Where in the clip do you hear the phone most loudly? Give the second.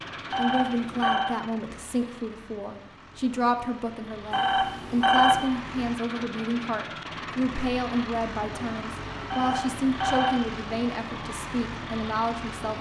5 s.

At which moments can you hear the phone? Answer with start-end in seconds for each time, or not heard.
0.3-1.4, 4.3-5.5, 9.3-10.4.